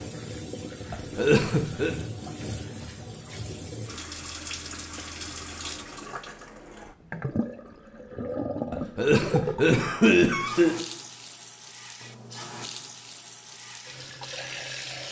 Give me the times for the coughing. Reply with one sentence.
You can hear the coughing from 0.9 to 1.9 s and from 8.7 to 10.8 s.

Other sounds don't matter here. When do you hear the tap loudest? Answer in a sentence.
The loudest moment of the tap is at 9 seconds.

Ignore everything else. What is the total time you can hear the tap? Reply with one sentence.
You can hear the tap for 15 seconds altogether.